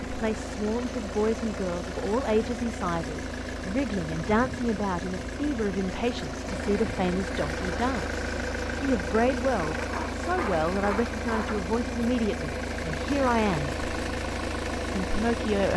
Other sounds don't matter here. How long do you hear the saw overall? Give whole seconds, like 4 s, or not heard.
2 s.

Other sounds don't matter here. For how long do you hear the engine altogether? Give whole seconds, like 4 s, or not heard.
16 s.